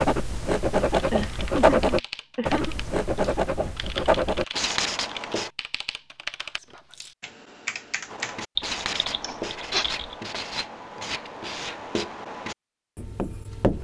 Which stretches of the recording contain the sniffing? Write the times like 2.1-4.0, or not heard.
1.1-2.8, 9.2-9.8.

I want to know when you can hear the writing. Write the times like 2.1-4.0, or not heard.
0.0-5.5, 8.1-13.8.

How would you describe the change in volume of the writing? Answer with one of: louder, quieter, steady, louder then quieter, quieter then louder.
quieter.